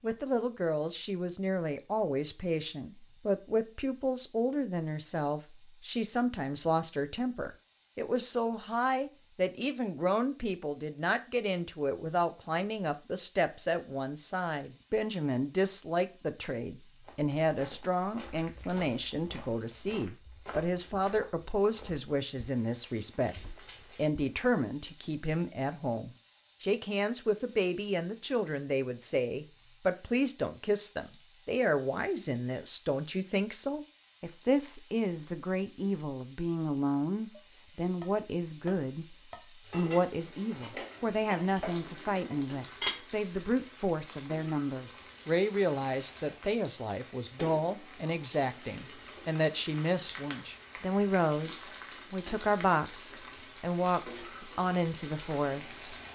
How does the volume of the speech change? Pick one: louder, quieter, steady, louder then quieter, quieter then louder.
steady.